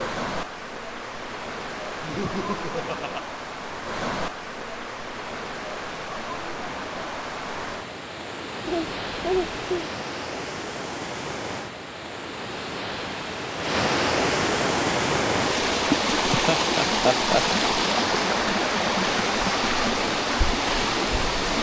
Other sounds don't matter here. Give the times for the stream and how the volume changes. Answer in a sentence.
You can hear the stream from 0.0 to 21.5 s, getting louder.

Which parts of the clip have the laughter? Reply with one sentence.
You can hear the laughter from 2.0 to 3.2 s, from 8.7 to 9.9 s and from 16.3 to 17.4 s.